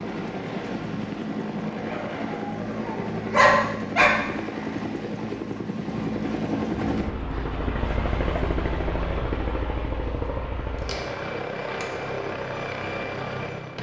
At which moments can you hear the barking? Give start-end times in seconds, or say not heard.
1.9-4.2, 10.7-11.8.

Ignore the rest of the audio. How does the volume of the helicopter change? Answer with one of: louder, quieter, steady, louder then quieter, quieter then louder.
steady.